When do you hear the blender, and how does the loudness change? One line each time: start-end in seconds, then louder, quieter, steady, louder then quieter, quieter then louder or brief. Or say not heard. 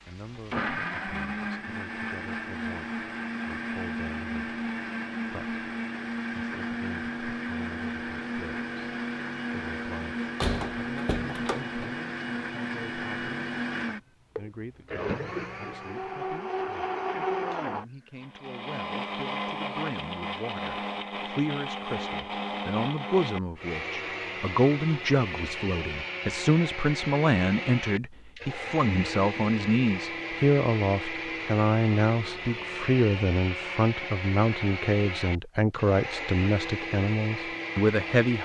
0.0-38.4 steady.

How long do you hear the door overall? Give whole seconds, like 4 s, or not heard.
2 s.